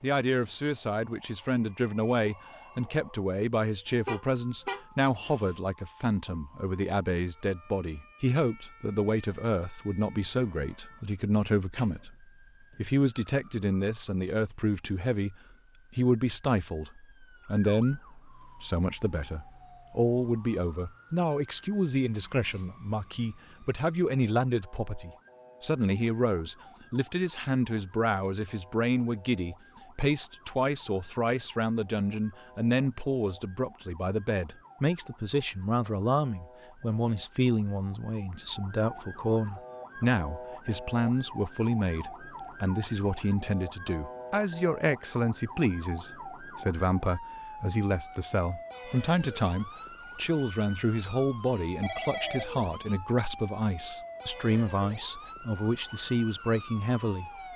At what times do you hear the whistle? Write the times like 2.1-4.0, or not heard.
not heard.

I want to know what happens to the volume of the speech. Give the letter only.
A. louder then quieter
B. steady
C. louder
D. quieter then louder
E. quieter
B.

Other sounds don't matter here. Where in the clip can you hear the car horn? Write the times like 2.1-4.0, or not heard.
3.9-5.6.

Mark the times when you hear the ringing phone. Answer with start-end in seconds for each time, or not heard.
51.8-52.6.